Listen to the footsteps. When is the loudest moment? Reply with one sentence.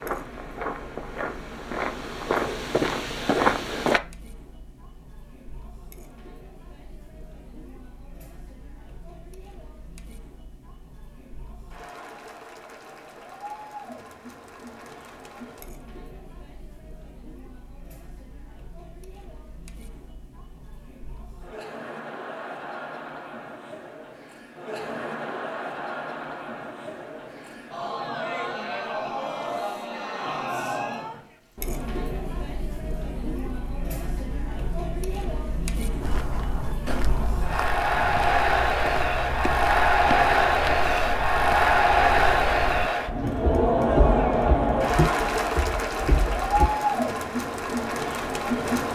The loudest moment of the footsteps is at 3 seconds.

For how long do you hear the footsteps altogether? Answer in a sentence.
The footsteps can be heard for 15 seconds in total.